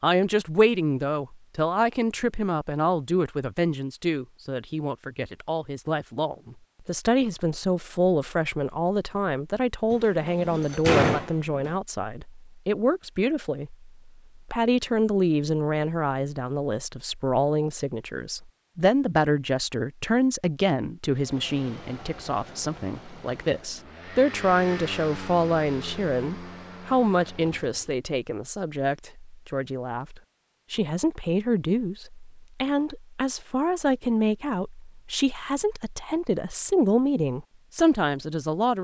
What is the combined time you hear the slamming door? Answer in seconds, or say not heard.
2 s.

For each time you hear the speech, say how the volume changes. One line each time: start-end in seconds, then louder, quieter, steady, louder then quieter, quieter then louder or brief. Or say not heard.
0.0-38.8 steady.